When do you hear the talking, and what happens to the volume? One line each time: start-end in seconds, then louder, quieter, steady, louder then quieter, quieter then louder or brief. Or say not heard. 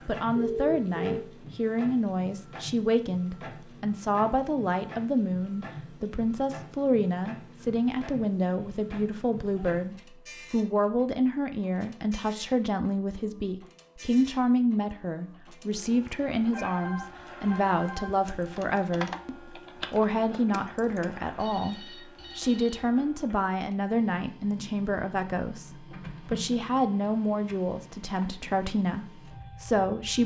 0.1-30.2 steady.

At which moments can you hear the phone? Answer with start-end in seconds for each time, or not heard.
0.3-1.2, 16.5-18.1, 21.4-23.0.